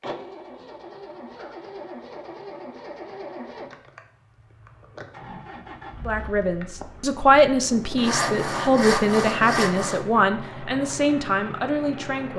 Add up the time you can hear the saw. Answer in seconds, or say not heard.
2 s.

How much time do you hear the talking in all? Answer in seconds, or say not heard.
6 s.